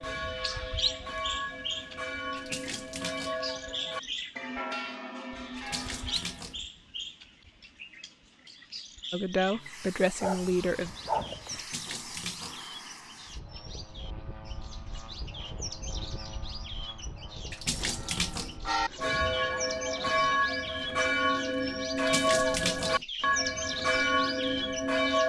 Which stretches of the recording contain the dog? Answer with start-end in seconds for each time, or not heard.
10.2-11.6.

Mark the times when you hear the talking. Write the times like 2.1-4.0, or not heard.
9.1-10.9.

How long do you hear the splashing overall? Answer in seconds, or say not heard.
5 s.